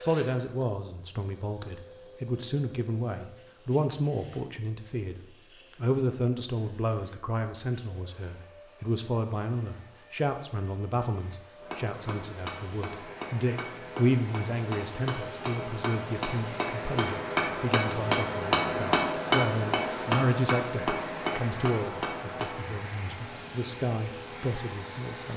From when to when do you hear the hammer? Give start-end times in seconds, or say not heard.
11.6-22.5.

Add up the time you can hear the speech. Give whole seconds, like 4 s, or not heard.
25 s.